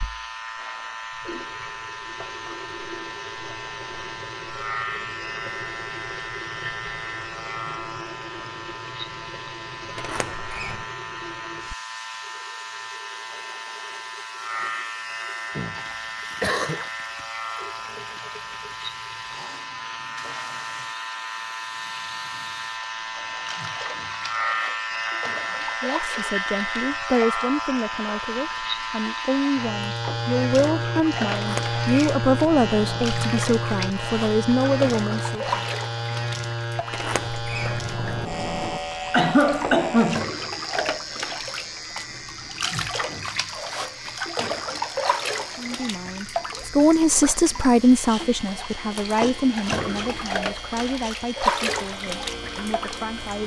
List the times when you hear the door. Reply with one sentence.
The door can be heard from 9.9 to 10.8 s, from 31.3 to 33.1 s and from 36.9 to 38.8 s.